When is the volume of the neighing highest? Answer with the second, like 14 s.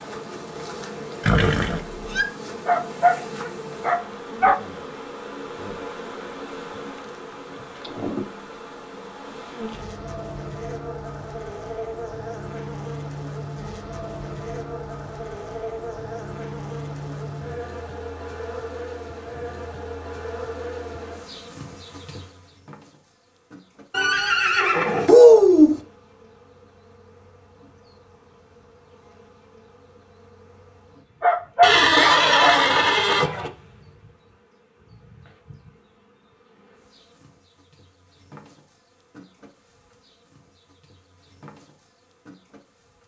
25 s.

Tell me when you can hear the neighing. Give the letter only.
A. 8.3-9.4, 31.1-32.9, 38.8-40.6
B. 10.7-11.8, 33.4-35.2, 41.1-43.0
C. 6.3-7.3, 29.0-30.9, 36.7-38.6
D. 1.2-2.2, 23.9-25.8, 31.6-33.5
D.